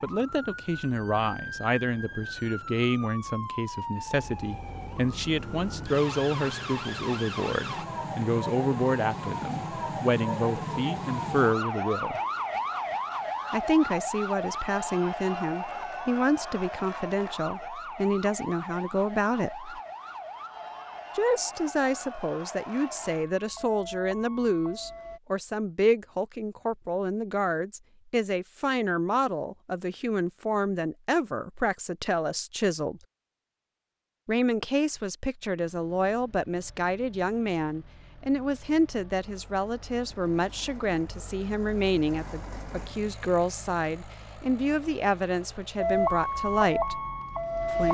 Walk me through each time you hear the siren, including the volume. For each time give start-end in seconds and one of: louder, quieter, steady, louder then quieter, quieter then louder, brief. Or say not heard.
0.0-25.2 louder then quieter
45.8-47.8 brief.